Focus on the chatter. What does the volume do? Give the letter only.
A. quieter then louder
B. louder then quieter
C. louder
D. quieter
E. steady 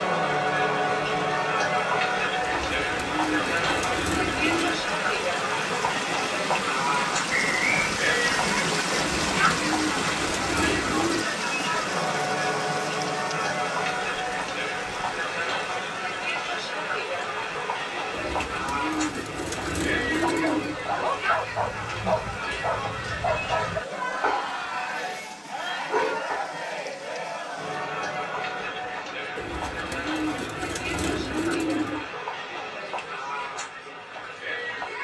D.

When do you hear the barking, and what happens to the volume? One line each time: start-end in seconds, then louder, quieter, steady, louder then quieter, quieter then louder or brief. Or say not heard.
20.1-26.6 steady.